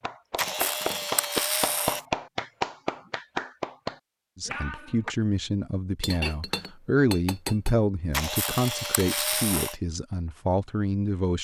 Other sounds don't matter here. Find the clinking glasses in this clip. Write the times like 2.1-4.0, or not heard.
0.4-1.1, 6.0-7.8.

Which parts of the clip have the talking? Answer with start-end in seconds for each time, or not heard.
4.3-11.3.